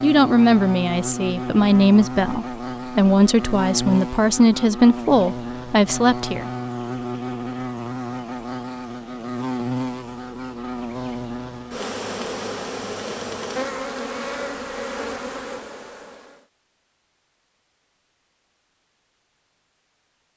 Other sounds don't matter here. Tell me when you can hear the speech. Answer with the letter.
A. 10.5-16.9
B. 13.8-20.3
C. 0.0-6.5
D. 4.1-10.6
C.